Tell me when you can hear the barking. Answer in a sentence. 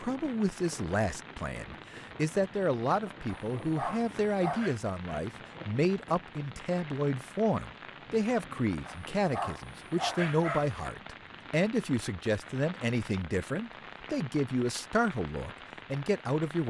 You can hear the barking from 3.2 to 4.8 s and from 8.8 to 10.8 s.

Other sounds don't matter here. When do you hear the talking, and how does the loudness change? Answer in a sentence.
You can hear the talking from 0.0 to 16.6 s, at a steady volume.